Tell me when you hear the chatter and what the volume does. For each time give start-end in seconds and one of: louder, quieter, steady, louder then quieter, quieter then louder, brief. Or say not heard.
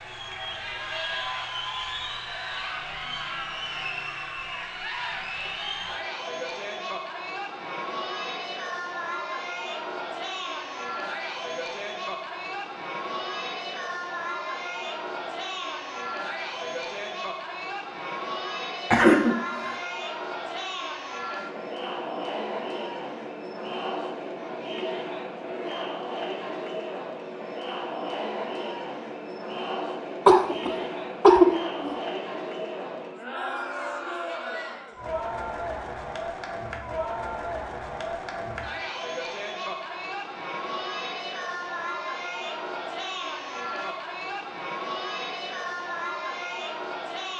0.0-47.3 steady.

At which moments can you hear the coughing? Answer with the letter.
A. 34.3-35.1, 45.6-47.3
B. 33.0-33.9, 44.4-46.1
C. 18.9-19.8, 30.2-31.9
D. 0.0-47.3
C.